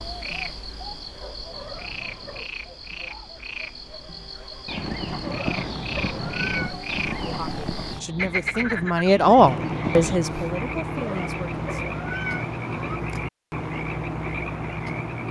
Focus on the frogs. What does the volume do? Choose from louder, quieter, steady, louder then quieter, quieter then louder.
louder.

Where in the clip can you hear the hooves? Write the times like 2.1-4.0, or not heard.
4.7-10.2.